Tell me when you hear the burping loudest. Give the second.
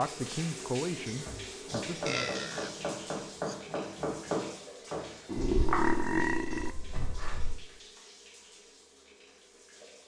6 s.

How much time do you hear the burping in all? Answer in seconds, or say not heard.
2 s.